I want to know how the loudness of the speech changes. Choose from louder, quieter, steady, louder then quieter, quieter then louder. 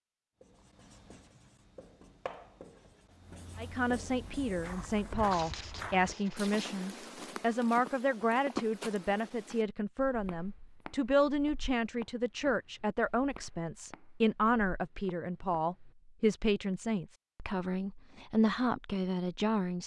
steady.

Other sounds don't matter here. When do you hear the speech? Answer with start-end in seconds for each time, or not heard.
3.5-19.8.